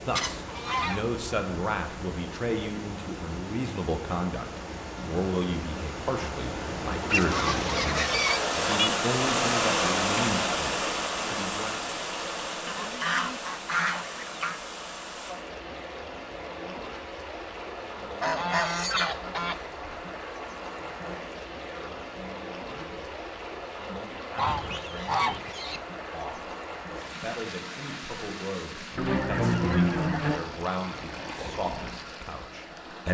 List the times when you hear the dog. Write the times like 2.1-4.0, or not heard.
not heard.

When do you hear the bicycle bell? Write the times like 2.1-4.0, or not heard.
not heard.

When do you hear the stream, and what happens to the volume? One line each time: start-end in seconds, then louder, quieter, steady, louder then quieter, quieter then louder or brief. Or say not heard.
0.0-33.0 louder then quieter.